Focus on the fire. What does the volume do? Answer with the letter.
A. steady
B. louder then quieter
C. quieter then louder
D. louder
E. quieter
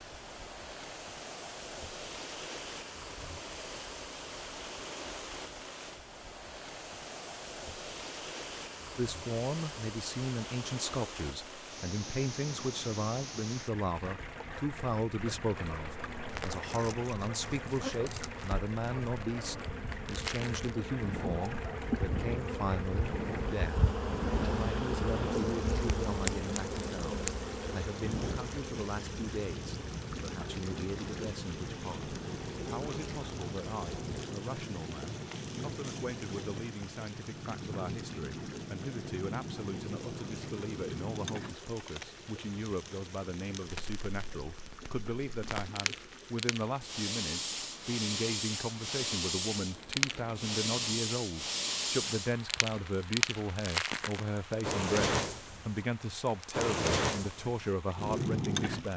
D.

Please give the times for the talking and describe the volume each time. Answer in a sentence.
You can hear the talking from 8.9 to 58.9 s, getting quieter then louder.